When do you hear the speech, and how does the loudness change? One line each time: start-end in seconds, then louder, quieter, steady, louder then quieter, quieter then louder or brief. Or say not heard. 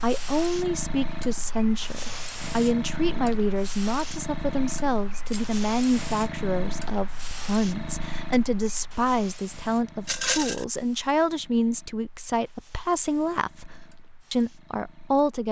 0.0-13.7 steady
14.3-15.4 brief.